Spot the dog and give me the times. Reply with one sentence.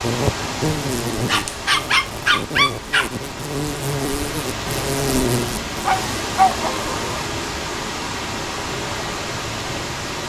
The dog can be heard from 1.2 to 3.1 s and from 5.8 to 7.2 s.